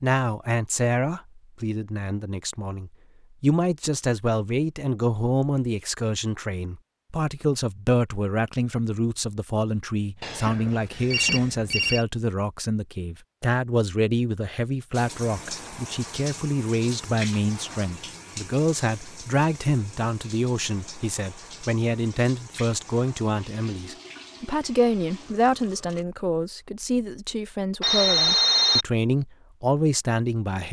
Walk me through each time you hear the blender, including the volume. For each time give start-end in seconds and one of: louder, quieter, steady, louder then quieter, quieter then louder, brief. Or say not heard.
not heard.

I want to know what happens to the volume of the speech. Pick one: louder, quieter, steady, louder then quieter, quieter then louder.
steady.